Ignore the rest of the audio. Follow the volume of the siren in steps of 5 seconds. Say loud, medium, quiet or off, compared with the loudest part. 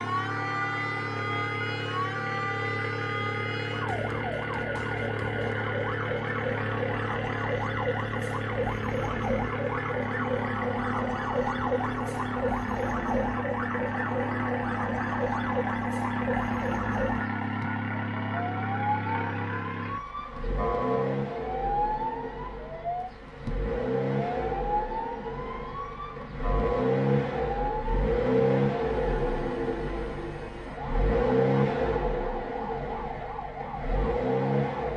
loud, loud, loud, loud, loud, medium, medium.